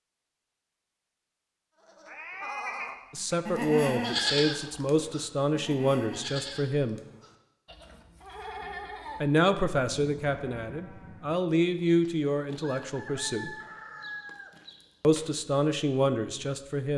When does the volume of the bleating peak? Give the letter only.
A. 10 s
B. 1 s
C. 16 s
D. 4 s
D.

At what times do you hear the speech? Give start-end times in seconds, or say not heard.
3.1-7.0, 9.2-13.6, 15.0-16.9.